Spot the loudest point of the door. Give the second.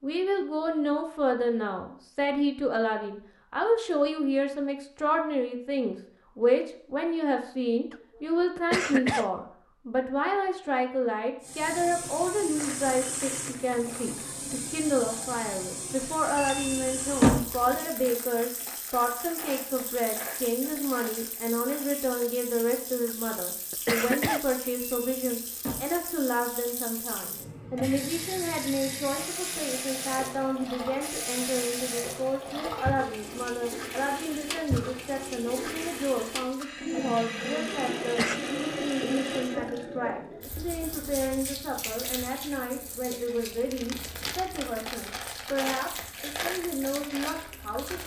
17 s.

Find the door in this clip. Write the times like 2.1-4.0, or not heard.
16.4-17.7, 24.8-26.1.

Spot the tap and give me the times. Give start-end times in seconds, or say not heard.
11.4-48.0.